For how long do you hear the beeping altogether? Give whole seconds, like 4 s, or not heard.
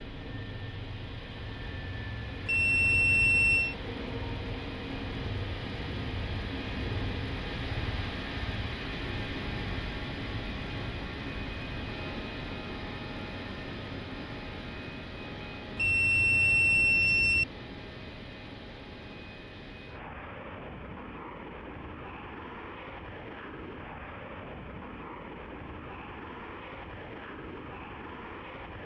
3 s.